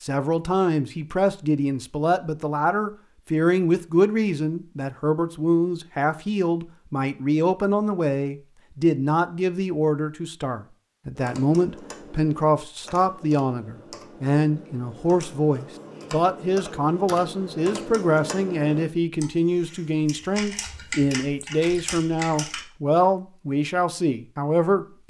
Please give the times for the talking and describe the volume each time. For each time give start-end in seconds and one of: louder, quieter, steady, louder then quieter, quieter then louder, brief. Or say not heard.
0.0-25.0 steady.